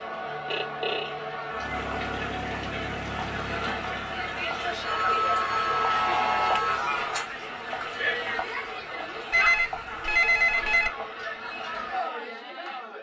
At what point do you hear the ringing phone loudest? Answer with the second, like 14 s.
10 s.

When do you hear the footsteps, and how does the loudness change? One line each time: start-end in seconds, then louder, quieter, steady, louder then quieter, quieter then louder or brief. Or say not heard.
not heard.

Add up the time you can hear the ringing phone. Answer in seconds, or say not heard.
4 s.